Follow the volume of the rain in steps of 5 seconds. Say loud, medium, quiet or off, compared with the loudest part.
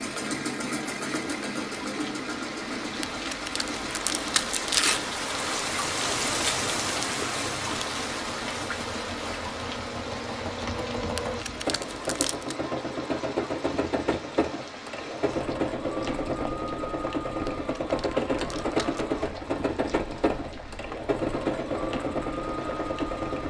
medium, loud, medium, medium, medium.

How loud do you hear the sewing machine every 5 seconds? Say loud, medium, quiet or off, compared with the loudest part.
medium, medium, loud, loud, loud.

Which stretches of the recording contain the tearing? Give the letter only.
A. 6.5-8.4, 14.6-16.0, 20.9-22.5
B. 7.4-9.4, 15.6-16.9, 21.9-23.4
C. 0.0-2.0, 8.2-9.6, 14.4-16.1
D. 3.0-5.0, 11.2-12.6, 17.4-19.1
D.